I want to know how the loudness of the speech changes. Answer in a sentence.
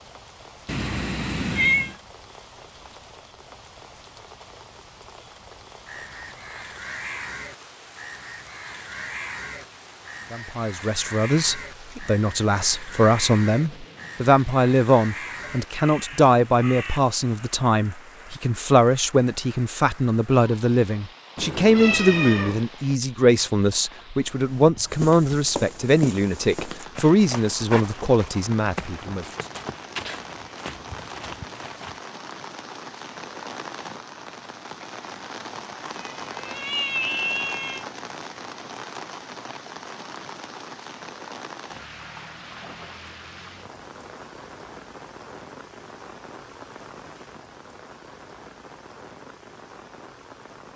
The loudness of the speech stays about the same.